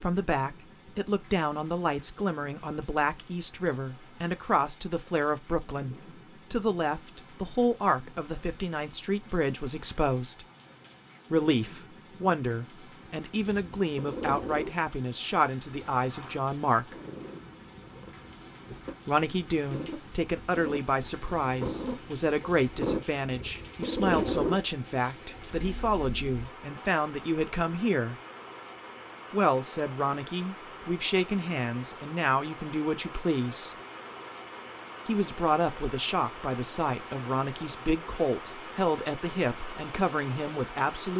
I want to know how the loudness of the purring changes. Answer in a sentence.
The volume of the purring goes down, then up.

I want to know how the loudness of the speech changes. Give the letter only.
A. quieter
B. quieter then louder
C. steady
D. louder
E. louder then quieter
C.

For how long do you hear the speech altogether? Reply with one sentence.
You can hear the speech for 36 seconds altogether.